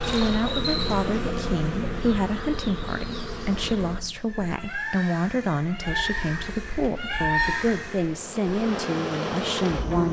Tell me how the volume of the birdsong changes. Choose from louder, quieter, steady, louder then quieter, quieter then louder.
quieter then louder.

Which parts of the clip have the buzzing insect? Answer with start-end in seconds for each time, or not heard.
0.0-4.0, 6.2-10.0.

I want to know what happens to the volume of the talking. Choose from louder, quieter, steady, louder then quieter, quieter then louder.
steady.